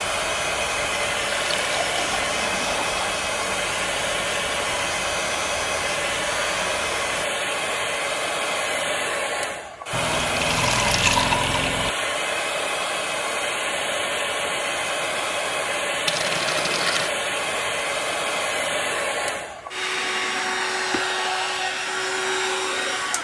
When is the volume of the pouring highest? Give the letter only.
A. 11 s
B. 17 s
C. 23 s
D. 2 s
A.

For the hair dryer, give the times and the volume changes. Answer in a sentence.
You can hear the hair dryer from 0.0 to 23.1 s, at a steady volume.